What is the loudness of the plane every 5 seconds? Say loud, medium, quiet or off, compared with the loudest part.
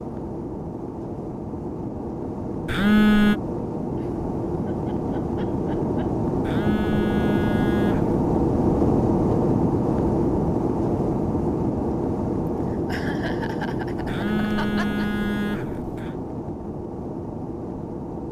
medium, loud, loud, medium.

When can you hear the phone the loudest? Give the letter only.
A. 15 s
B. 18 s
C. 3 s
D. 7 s
C.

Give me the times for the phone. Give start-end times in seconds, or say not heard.
2.6-3.4, 6.5-8.2, 14.1-16.1.